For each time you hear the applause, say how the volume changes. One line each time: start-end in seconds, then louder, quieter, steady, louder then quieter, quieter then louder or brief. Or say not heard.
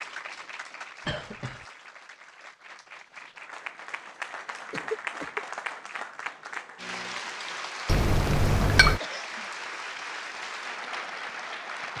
0.0-11.9 louder.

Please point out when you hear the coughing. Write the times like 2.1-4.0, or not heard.
1.1-1.6, 4.7-5.4, 9.0-9.5.